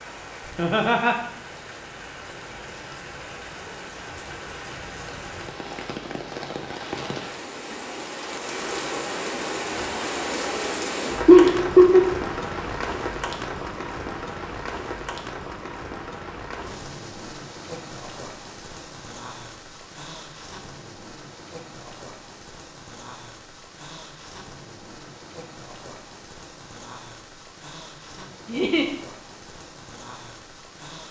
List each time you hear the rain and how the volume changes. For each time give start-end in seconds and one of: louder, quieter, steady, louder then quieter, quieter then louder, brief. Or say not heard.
0.0-31.0 louder then quieter.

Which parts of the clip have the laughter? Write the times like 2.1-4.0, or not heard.
0.5-1.1, 11.2-12.1, 28.4-28.9.